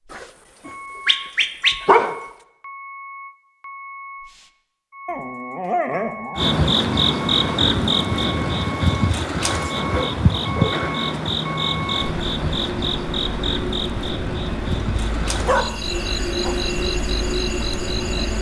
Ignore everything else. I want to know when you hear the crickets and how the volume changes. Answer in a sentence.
You can hear the crickets from 6.3 to 18.3 s, getting quieter.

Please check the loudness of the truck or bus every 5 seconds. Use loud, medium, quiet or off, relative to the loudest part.
medium, medium, loud, loud.